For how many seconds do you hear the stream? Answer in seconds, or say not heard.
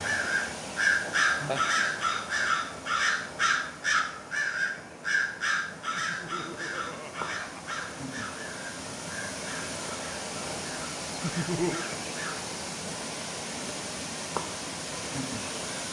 16 s.